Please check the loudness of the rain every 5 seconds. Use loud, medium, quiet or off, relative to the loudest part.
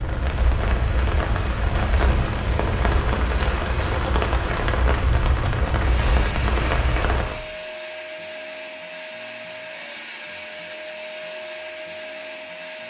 loud, loud, off.